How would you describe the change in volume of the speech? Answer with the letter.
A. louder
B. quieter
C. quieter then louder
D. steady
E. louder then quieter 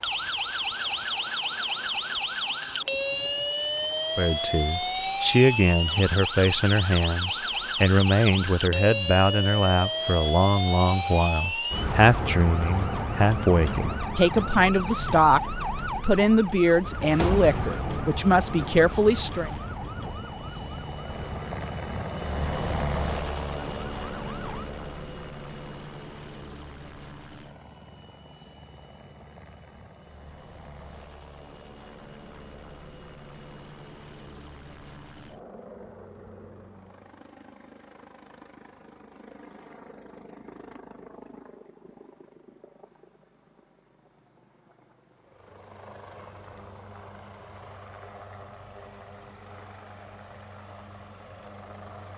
D.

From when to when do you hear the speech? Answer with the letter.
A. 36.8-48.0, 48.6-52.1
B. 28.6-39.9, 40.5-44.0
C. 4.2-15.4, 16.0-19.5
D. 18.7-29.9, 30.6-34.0
C.